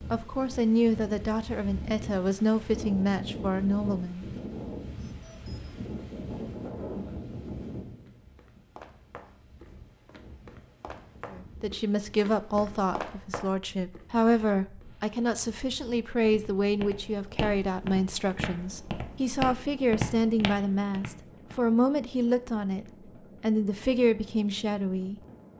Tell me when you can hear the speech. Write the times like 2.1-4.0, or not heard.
0.1-4.2, 11.3-25.2.